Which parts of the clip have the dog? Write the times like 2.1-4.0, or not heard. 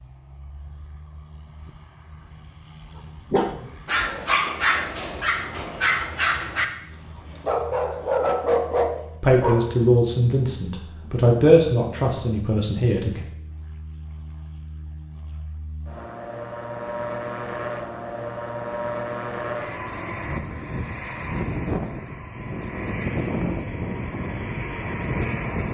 3.3-9.9.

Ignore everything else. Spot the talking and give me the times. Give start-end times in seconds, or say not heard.
9.2-13.2.